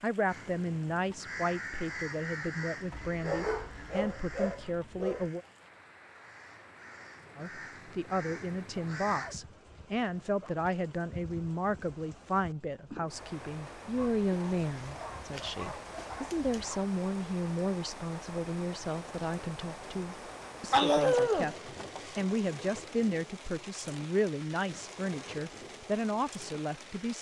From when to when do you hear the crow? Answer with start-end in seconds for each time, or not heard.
0.2-9.3.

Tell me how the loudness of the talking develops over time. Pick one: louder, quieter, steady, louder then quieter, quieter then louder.
steady.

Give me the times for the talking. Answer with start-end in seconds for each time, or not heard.
0.0-5.5, 7.3-27.1.